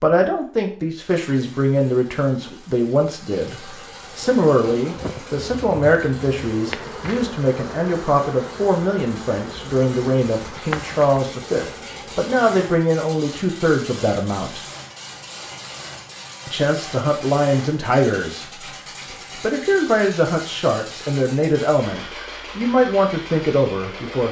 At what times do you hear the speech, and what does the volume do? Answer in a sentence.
You can hear the speech from 0.0 to 14.6 s, at a steady volume; and from 16.4 to 24.2 s, getting quieter then louder.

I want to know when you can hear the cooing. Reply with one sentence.
The cooing can't be heard in this clip.